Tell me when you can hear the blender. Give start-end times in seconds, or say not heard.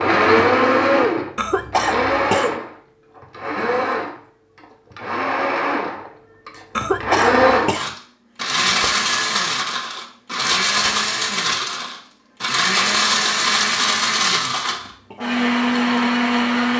0.0-16.7.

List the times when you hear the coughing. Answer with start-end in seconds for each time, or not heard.
1.4-2.5, 6.8-8.0, 14.4-15.2.